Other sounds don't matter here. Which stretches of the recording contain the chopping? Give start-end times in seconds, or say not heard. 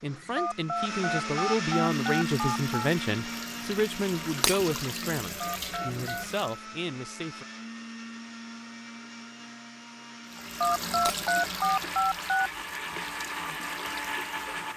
not heard.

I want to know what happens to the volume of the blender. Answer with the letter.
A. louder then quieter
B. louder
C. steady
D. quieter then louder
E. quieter
D.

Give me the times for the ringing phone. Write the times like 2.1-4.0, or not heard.
0.3-2.9, 5.4-6.2, 10.6-12.3.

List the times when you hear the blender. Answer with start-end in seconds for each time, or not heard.
0.0-14.7.